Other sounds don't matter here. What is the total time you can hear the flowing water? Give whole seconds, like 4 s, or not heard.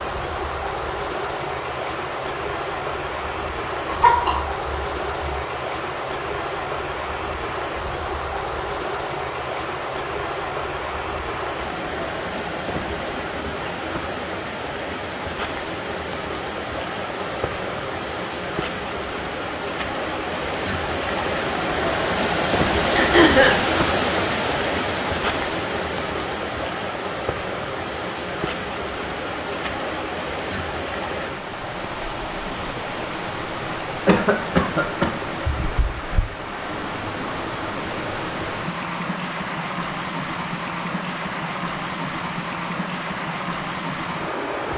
45 s.